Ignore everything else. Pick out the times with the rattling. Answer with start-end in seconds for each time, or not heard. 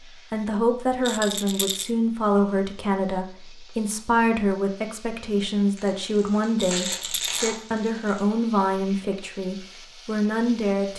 1.1-1.9, 6.5-7.5.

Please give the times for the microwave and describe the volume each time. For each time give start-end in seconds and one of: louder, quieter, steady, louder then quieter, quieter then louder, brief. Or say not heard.
not heard.